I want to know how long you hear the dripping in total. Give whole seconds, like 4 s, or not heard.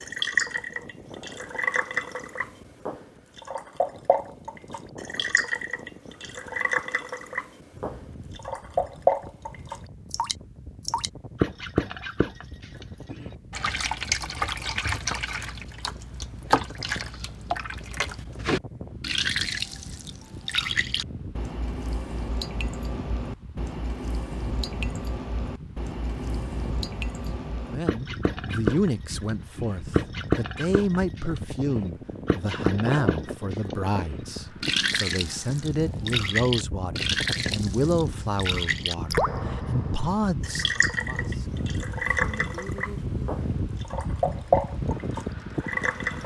46 s.